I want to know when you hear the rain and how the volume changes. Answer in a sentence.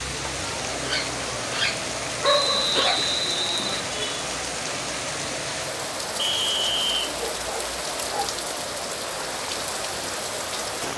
The rain can be heard from 0.0 to 10.9 s, at a steady volume.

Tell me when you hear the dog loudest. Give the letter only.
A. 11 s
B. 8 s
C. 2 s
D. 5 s
C.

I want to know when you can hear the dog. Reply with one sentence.
You can hear the dog from 0.8 to 3.0 s and from 7.2 to 8.3 s.